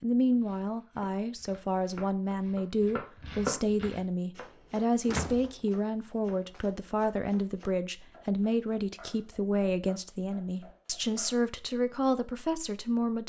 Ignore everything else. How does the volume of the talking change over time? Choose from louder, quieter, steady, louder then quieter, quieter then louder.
steady.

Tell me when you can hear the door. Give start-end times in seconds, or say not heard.
5.0-6.6.